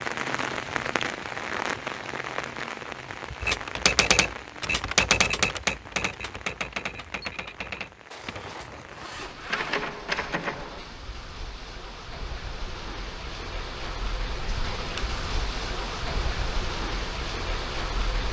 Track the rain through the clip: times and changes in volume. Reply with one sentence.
The rain can be heard from 0.0 to 18.2 s, getting quieter then louder.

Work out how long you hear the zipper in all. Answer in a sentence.
The zipper can be heard for 2 seconds in total.